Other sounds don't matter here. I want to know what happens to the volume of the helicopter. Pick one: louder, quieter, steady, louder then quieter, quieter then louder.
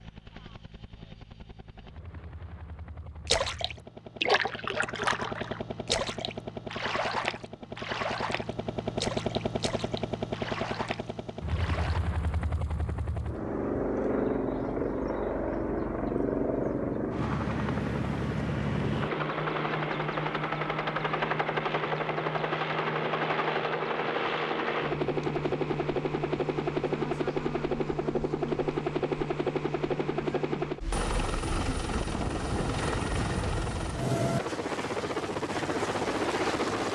louder.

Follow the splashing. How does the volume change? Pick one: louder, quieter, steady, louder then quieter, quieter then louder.
quieter.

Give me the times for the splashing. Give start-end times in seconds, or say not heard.
3.2-12.0.